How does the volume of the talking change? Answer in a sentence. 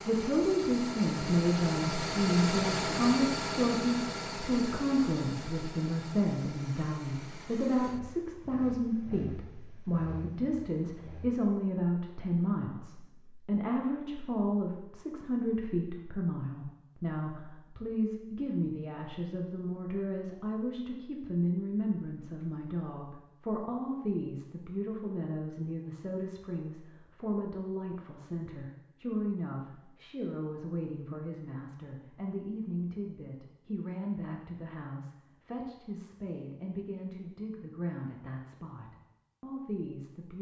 The loudness of the talking goes down.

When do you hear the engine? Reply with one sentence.
You can hear the engine from 0.0 to 11.4 s.